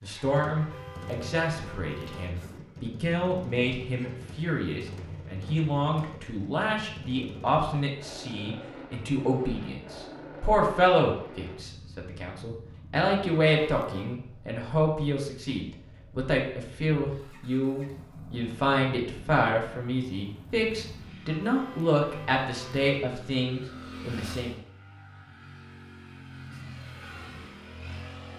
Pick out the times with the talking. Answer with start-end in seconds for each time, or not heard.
0.0-24.6.